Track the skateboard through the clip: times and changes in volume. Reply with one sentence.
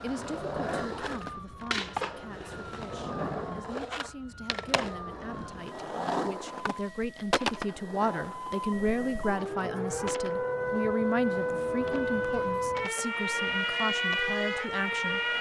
You can hear the skateboard from 0.0 to 15.3 s, getting quieter.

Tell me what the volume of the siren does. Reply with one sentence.
The volume of the siren goes up.